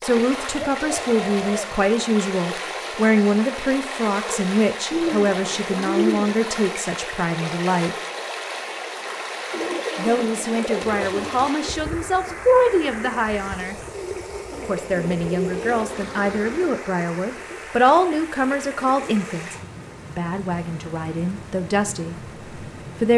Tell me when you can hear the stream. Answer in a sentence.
You can hear the stream from 0.0 to 23.1 s.